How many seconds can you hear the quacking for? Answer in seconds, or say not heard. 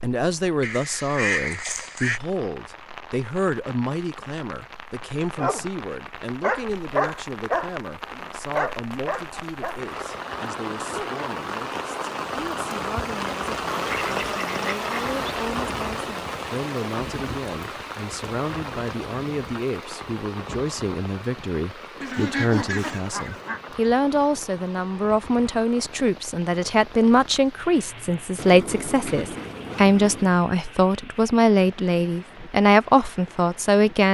7 s.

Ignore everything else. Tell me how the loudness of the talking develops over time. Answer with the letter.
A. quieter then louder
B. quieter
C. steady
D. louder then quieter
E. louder
A.